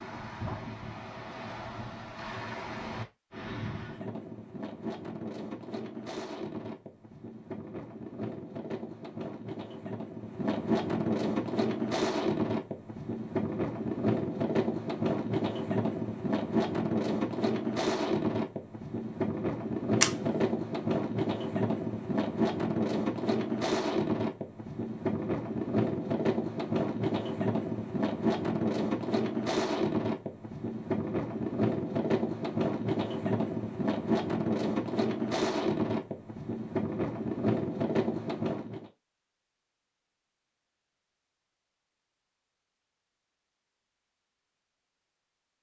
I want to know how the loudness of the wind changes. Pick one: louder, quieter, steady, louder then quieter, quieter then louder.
louder.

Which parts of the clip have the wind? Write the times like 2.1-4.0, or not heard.
0.0-38.9.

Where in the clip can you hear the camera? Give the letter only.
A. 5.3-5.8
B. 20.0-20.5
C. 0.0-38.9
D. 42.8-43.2
B.